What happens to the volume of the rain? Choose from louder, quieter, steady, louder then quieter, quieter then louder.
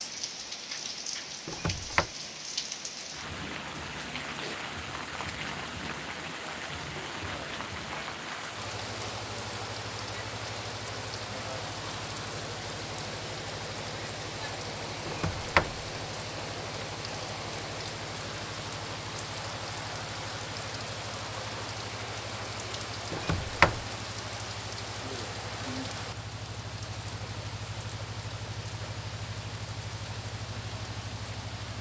steady.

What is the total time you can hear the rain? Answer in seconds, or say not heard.
32 s.